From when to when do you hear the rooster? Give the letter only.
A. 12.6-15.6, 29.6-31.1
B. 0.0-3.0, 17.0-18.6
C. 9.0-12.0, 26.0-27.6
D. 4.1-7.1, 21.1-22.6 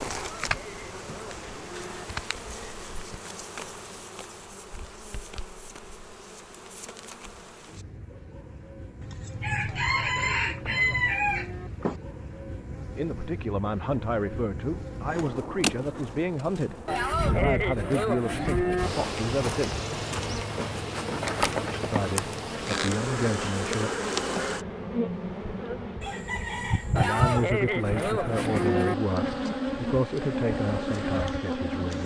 C.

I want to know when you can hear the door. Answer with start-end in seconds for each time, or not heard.
not heard.